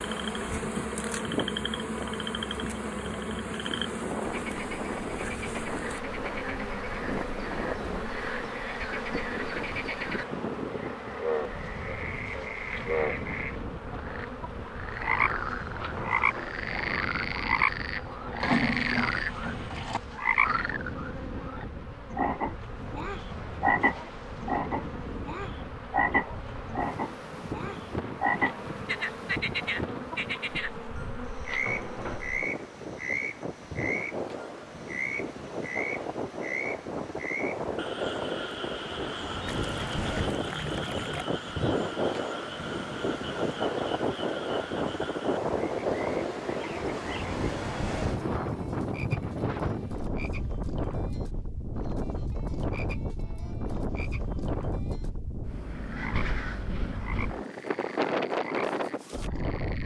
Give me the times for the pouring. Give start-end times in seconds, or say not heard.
18.4-20.0, 39.5-41.3.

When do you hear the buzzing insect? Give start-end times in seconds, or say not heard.
0.0-32.5.